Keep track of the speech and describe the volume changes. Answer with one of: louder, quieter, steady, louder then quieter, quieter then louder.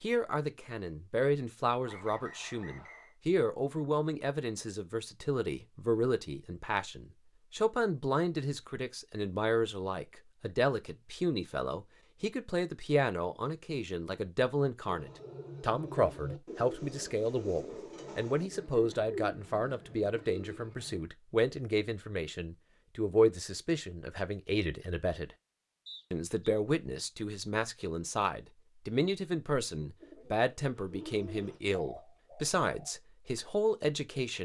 steady.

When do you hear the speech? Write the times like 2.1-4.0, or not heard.
0.0-25.4, 26.1-34.4.